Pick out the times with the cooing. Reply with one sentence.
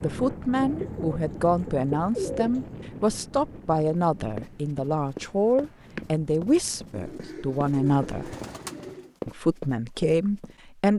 The cooing can be heard from 0.5 to 2.8 s and from 6.9 to 9.1 s.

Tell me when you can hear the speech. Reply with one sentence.
You can hear the speech from 0.0 to 8.3 s and from 9.2 to 10.9 s.